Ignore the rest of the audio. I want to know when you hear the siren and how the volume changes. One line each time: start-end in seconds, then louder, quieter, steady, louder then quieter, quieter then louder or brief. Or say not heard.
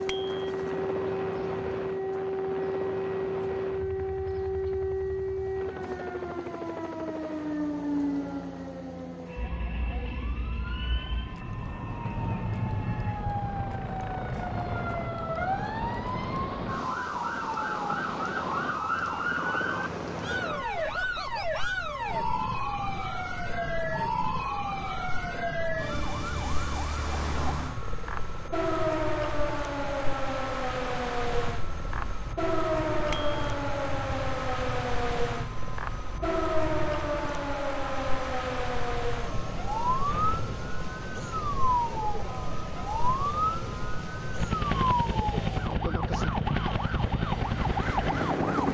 0.0-48.6 steady.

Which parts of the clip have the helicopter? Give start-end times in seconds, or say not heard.
0.0-48.6.